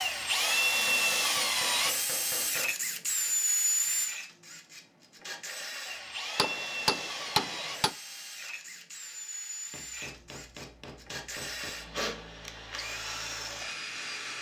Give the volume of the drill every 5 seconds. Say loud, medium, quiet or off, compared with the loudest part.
loud, medium, medium.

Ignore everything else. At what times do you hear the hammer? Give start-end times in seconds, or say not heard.
0.7-2.8, 6.3-8.0, 9.7-11.7.